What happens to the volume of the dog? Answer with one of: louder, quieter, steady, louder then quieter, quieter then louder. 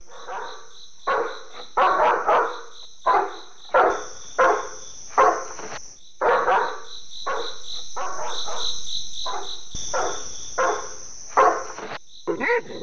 quieter then louder.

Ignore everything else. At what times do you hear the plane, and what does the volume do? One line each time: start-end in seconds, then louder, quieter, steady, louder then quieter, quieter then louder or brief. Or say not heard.
not heard.